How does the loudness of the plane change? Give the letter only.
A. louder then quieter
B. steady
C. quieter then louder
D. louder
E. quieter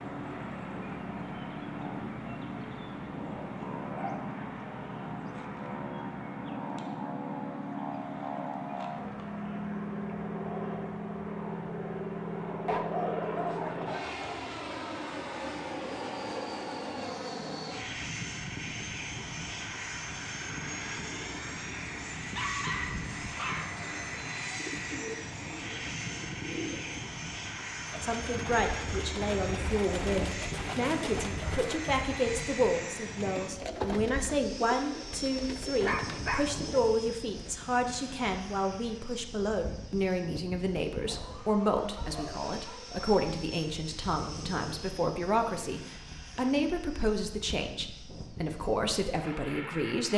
E.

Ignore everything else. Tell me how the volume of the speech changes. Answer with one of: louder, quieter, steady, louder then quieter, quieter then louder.
steady.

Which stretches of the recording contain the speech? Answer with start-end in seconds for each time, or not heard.
28.0-50.1.